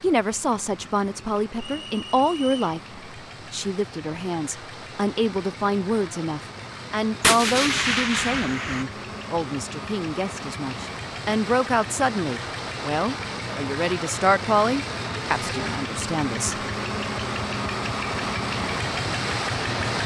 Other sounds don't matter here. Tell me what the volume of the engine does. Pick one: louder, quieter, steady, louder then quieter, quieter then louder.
louder.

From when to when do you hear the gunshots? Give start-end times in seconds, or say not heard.
7.2-8.8.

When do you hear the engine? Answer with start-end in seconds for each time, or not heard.
0.0-20.0.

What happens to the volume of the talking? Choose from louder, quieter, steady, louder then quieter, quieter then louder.
steady.